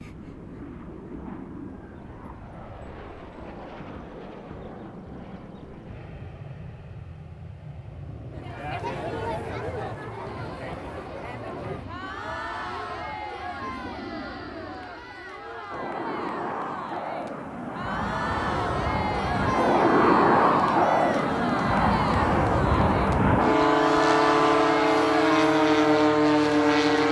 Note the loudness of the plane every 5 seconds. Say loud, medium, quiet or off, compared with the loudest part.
quiet, quiet, quiet, medium, loud, loud.